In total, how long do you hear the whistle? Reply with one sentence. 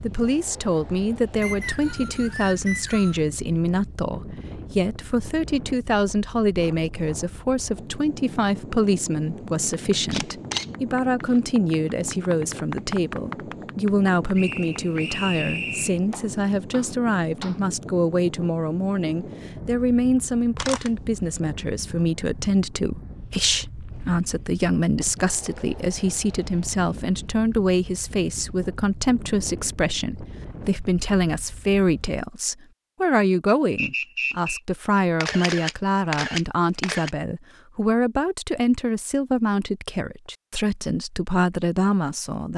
The whistle can be heard for 4 seconds in total.